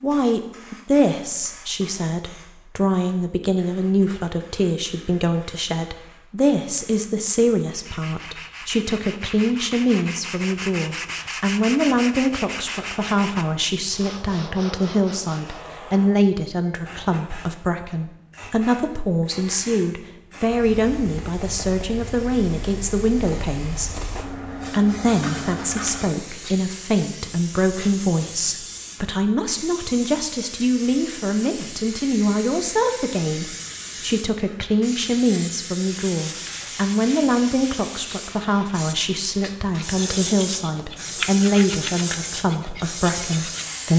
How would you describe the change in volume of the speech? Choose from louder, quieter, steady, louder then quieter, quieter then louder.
steady.